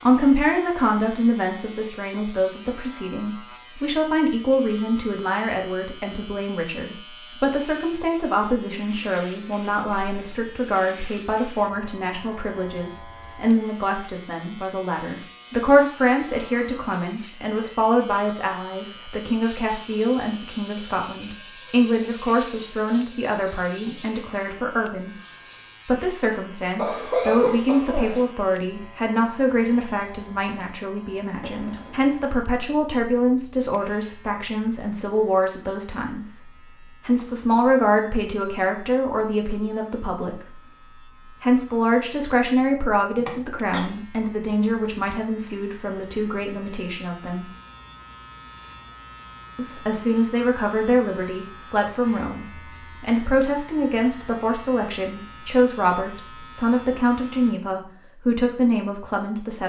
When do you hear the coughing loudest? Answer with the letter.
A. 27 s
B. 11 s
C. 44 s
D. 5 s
A.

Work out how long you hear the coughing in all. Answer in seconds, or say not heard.
3 s.